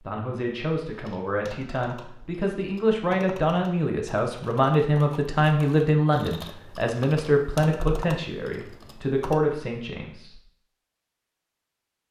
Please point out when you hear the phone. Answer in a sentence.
The phone can't be heard in this clip.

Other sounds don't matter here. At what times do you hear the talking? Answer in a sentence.
You can hear the talking from 0.0 to 10.4 s.